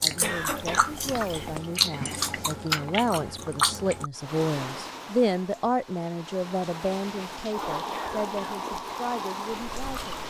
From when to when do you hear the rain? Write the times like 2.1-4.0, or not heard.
4.2-10.2.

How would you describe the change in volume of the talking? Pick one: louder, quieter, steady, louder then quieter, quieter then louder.
louder then quieter.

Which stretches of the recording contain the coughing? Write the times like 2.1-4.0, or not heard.
0.2-1.6, 7.8-8.7.